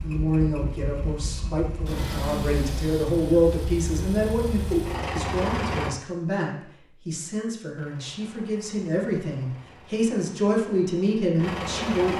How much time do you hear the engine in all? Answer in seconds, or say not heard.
10 s.